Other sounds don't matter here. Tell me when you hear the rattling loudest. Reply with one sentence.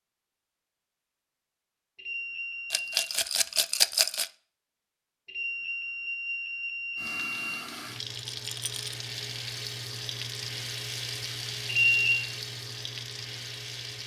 The loudest moment of the rattling is at 4 seconds.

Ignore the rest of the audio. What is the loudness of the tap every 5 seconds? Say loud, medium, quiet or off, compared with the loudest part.
off, loud, loud.